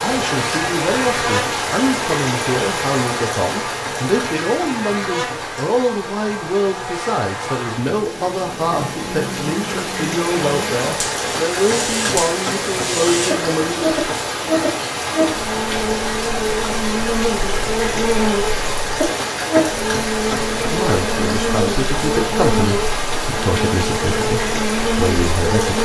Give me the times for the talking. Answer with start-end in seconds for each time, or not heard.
0.0-14.0, 20.7-25.8.